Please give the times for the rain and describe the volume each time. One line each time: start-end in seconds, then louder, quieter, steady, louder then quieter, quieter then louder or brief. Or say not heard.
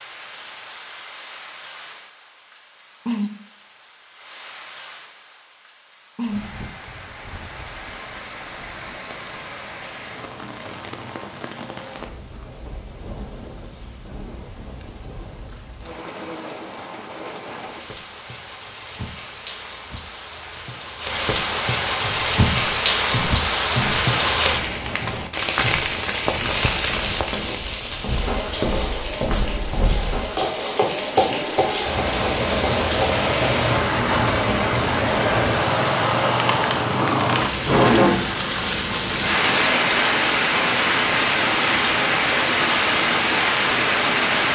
0.0-44.5 louder.